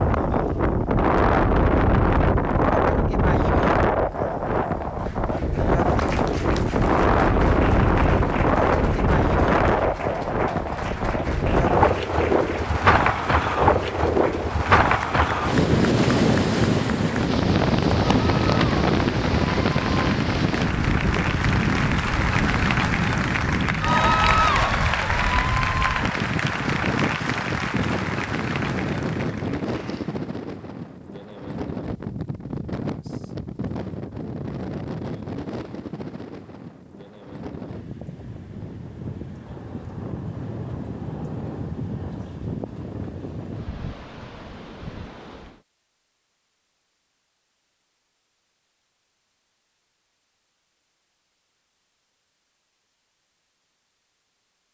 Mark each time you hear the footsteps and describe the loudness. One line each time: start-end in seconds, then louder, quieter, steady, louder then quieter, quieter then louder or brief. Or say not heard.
not heard.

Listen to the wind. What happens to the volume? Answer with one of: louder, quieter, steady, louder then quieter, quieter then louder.
quieter.